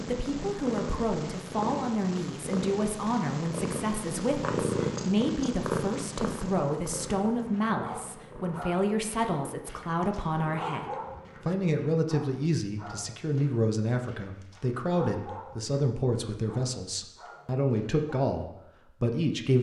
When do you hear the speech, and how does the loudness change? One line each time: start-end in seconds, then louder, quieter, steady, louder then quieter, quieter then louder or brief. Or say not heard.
0.1-19.5 steady.